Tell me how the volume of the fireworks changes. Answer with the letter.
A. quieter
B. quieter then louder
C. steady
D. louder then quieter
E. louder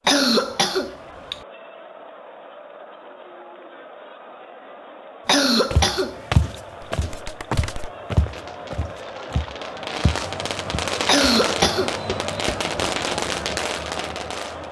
E.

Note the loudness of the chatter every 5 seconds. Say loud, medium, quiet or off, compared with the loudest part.
medium, medium, loud.